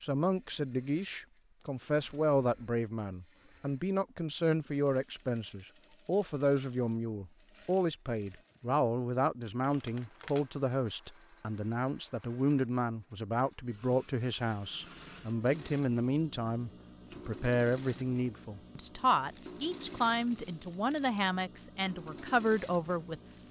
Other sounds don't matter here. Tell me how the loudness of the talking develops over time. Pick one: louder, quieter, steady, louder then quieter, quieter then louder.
steady.